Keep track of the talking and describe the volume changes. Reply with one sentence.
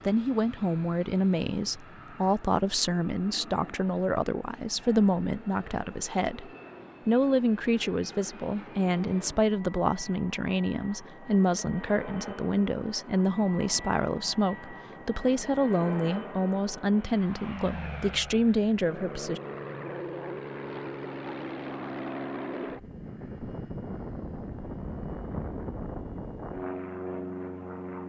The loudness of the talking stays about the same.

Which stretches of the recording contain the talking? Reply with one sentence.
You can hear the talking from 0.0 to 19.4 s.